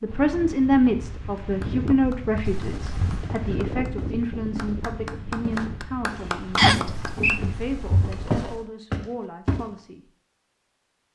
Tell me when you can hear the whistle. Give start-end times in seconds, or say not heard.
6.5-7.4.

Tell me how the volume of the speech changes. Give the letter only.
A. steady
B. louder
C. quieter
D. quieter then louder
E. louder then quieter
C.